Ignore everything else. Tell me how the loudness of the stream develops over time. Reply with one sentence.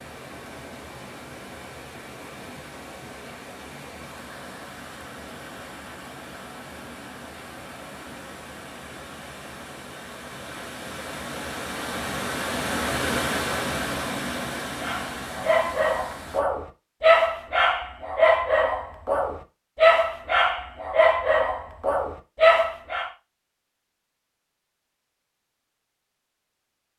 The loudness of the stream goes up.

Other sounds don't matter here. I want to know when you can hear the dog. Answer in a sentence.
The dog can be heard from 14.8 to 23.1 s.